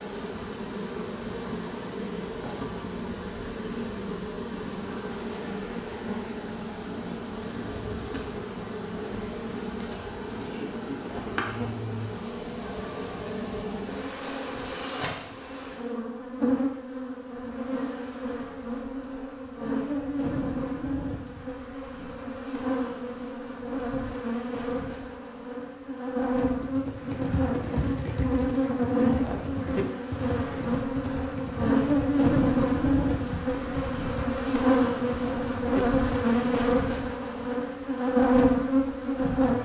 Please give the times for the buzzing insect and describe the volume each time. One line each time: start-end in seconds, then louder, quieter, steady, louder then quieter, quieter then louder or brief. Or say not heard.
0.0-39.5 louder.